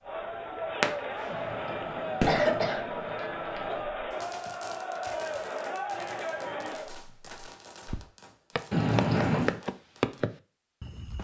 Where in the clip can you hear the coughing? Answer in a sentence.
The coughing can be heard from 1.2 to 3.8 s and from 8.7 to 9.6 s.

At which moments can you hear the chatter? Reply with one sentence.
The chatter can be heard from 0.0 to 7.0 s.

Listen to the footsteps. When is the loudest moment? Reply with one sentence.
The volume of the footsteps peaks at 10 seconds.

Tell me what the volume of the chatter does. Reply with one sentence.
The volume of the chatter stays about the same.